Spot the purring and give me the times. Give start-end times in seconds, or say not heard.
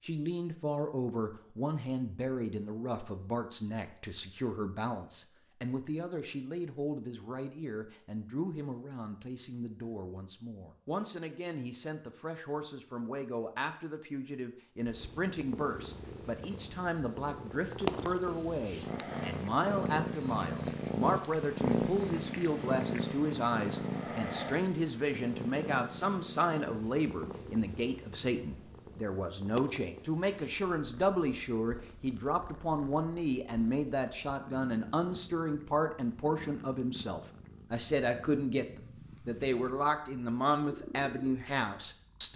14.8-42.3.